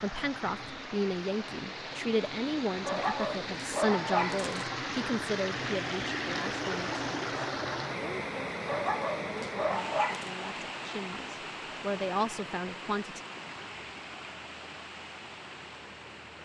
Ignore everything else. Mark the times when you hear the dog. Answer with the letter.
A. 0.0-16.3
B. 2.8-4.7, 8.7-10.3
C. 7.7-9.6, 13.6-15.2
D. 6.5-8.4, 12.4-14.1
B.